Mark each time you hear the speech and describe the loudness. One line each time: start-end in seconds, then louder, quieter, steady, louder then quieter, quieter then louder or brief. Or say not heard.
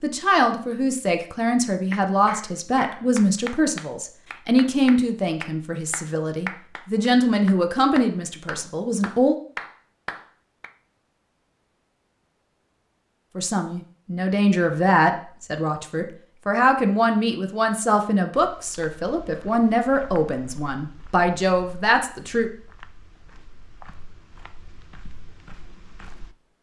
0.0-9.3 steady
13.3-22.5 steady.